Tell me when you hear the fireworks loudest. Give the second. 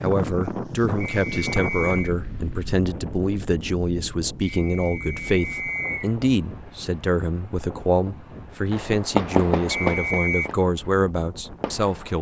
9 s.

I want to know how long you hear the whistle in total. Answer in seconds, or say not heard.
4 s.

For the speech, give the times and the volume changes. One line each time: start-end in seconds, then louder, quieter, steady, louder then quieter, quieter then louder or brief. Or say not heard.
0.0-12.1 steady.